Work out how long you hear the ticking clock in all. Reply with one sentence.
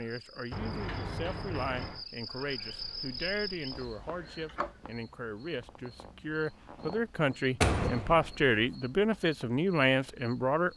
You can't hear the ticking clock here.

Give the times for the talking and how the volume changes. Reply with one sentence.
You can hear the talking from 0.0 to 10.7 s, getting louder.